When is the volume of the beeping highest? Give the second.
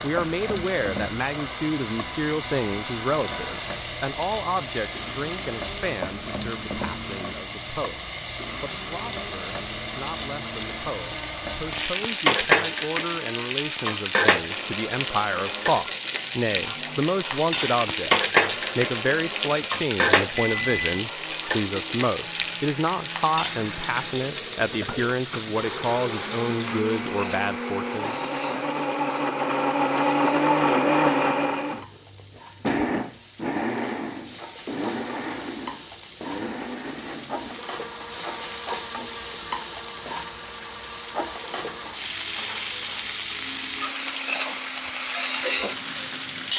21 s.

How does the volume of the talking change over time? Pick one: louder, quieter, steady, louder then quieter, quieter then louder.
quieter then louder.